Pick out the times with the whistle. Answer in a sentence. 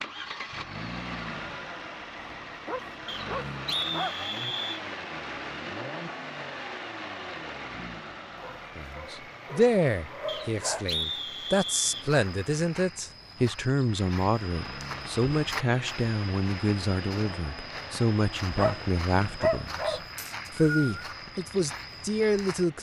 You can hear the whistle from 3.0 to 4.8 s, from 10.2 to 12.1 s and from 20.1 to 20.9 s.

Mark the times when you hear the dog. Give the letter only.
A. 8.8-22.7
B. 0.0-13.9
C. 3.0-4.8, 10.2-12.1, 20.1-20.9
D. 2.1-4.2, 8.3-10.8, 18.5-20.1
D.